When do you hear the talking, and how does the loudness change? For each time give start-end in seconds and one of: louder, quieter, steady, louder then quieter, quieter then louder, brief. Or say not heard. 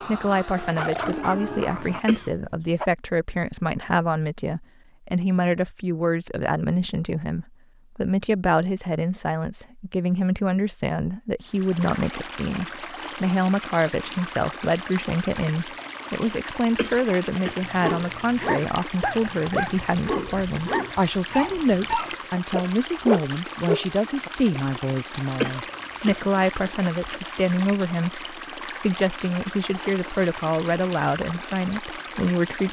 0.1-32.6 steady.